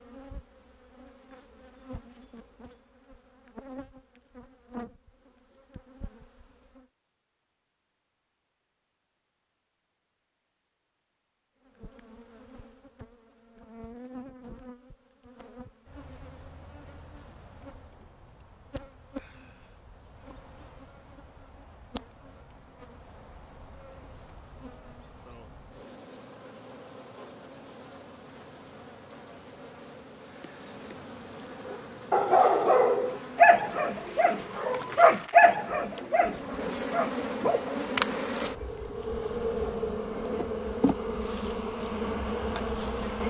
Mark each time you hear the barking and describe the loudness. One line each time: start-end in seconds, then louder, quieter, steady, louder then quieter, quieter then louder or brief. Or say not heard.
31.6-37.8 quieter.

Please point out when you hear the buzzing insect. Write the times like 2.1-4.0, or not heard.
0.0-6.9, 11.6-43.2.